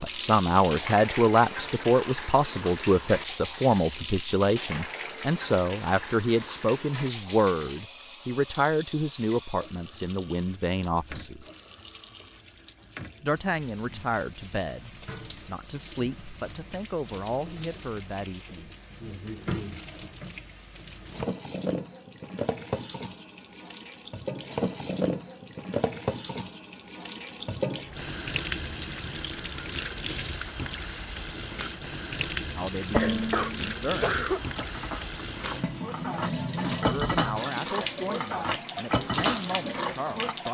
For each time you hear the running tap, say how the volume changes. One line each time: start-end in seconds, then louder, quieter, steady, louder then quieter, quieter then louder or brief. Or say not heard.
0.0-40.4 quieter then louder.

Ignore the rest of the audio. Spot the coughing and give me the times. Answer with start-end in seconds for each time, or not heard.
32.9-34.4.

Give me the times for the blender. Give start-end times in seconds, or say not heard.
not heard.